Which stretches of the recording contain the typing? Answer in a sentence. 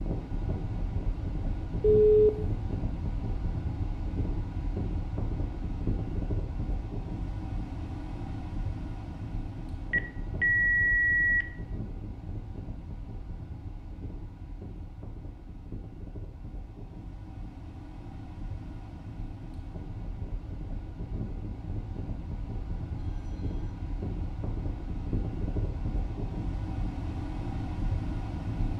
The typing can't be heard in this clip.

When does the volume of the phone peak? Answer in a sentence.
The volume of the phone peaks at 2 seconds.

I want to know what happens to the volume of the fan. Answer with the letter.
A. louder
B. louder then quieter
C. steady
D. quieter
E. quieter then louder
E.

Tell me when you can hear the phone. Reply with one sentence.
You can hear the phone from 1.8 to 2.3 s, from 9.9 to 11.4 s and from 23.1 to 23.7 s.